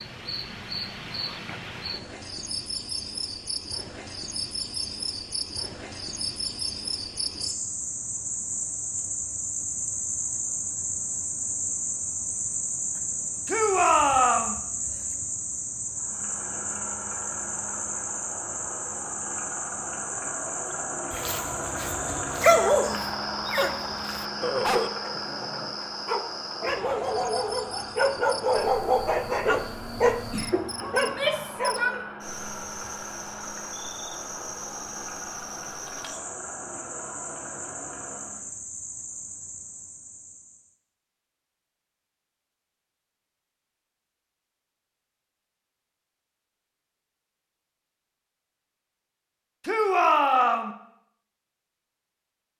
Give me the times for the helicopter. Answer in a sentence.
The helicopter can be heard from 15.9 to 38.6 s.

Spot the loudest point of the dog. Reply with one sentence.
The volume of the dog peaks at 23 seconds.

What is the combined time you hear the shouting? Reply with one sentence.
You can hear the shouting for 3 seconds altogether.